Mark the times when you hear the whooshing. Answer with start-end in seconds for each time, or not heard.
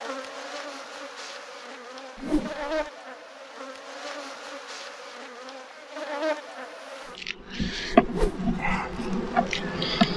2.1-2.9, 8.0-8.4.